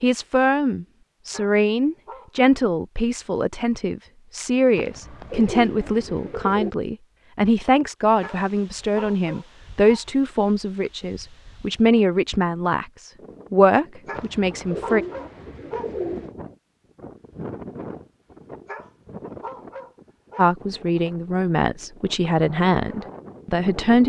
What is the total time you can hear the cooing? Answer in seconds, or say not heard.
4 s.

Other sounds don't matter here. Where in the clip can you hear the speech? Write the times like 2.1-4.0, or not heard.
0.0-15.1, 20.4-24.0.